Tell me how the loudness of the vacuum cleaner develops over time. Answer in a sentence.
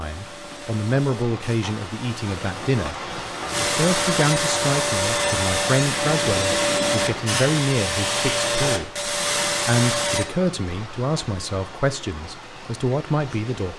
The loudness of the vacuum cleaner goes up.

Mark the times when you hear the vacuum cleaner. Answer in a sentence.
You can hear the vacuum cleaner from 0.0 to 10.2 s.